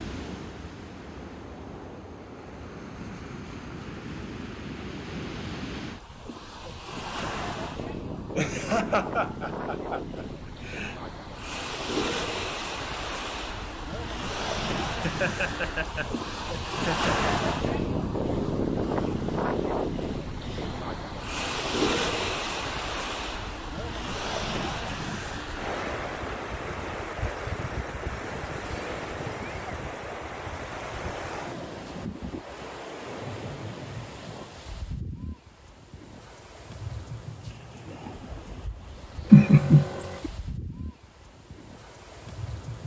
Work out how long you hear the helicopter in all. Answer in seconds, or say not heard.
not heard.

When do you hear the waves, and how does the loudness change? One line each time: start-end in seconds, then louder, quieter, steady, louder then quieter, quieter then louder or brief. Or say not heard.
0.0-42.8 louder then quieter.